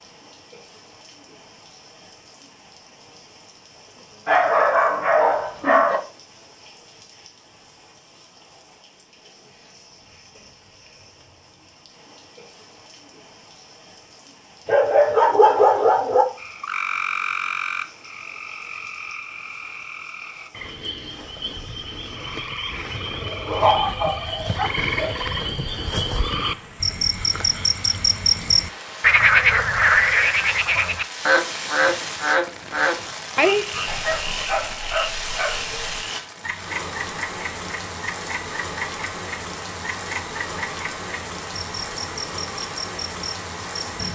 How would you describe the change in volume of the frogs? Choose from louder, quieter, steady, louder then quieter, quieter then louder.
louder then quieter.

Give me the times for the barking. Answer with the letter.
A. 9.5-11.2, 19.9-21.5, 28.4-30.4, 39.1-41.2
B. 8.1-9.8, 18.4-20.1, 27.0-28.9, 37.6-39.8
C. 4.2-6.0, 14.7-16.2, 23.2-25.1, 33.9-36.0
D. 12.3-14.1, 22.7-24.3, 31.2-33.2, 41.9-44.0
C.